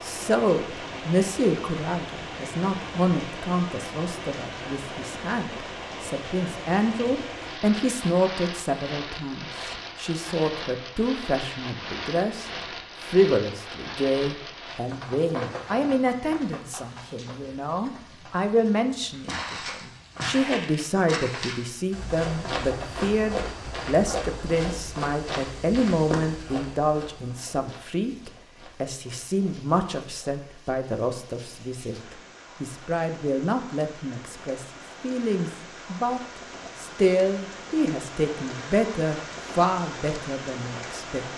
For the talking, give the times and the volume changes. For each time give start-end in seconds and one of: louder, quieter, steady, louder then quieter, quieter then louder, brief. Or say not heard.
0.0-41.2 steady.